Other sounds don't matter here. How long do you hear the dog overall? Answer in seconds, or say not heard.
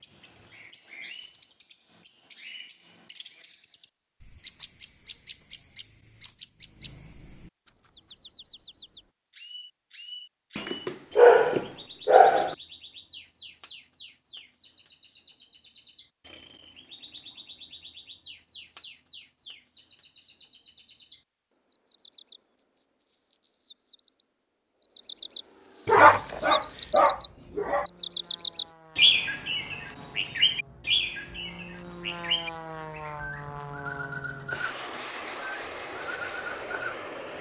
4 s.